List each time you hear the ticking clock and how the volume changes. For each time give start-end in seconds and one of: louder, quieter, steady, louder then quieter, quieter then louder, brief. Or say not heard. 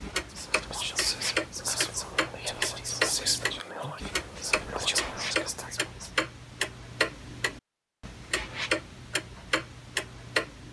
0.0-10.6 steady.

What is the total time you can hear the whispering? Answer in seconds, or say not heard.
6 s.